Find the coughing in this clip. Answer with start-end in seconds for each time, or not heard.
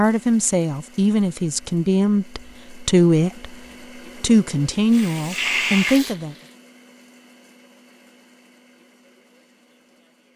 not heard.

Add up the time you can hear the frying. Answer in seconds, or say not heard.
2 s.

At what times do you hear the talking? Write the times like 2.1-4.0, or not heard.
0.0-3.5, 4.2-6.3.